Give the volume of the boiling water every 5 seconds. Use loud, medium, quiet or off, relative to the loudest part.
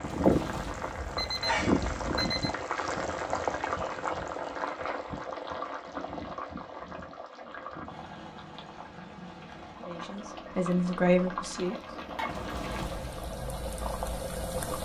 loud, medium, medium.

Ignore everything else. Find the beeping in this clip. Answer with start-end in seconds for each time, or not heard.
0.0-2.5, 12.2-13.3.